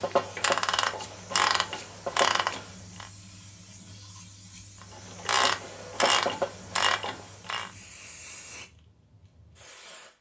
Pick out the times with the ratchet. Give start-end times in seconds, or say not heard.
0.0-3.1, 5.0-7.7.